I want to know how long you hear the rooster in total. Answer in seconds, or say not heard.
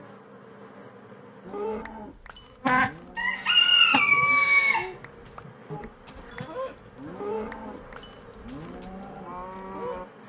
2 s.